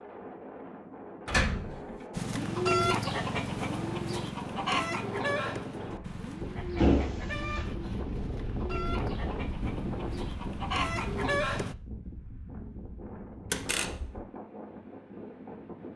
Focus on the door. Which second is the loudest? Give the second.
7 s.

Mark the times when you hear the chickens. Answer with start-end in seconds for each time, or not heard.
2.1-11.8.